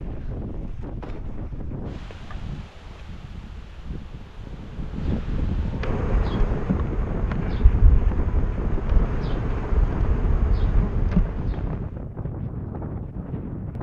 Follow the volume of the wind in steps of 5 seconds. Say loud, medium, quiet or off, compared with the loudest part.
medium, loud, loud.